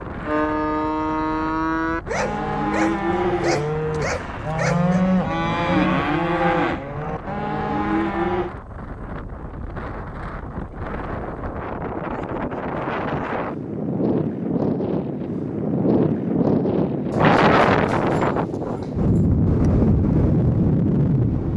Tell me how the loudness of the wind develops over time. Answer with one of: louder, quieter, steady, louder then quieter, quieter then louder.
louder.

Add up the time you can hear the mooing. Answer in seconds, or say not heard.
8 s.